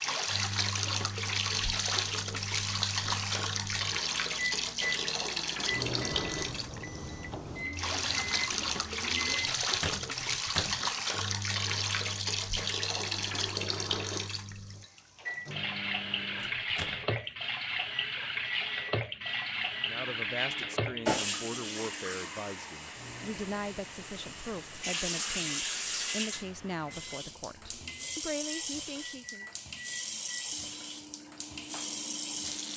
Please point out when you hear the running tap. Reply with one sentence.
You can hear the running tap from 0.0 to 32.7 s.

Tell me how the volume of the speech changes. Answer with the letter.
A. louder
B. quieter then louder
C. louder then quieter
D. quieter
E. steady
E.